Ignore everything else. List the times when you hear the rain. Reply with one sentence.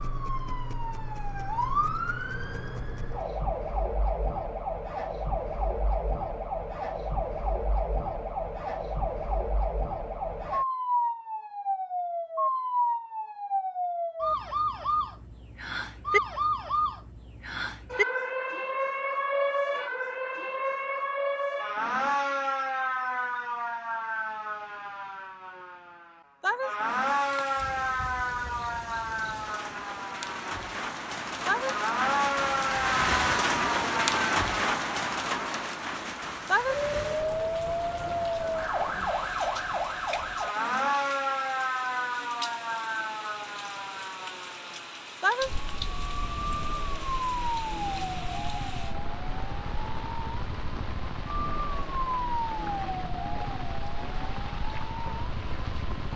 The rain can be heard from 27.0 to 56.1 s.